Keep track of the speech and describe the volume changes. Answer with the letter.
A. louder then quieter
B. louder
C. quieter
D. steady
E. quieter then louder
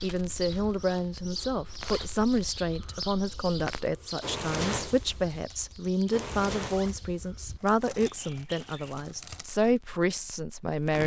D.